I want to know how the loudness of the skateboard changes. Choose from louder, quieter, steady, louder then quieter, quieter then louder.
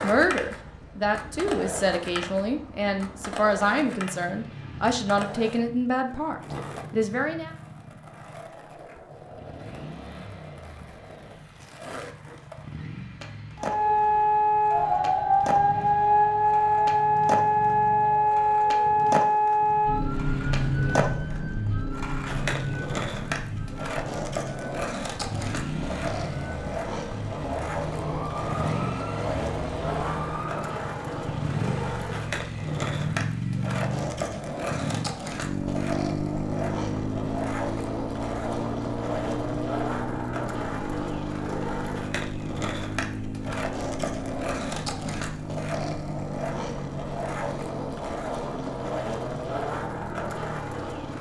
louder.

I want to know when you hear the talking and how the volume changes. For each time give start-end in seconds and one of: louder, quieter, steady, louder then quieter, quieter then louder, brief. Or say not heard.
0.0-7.5 steady.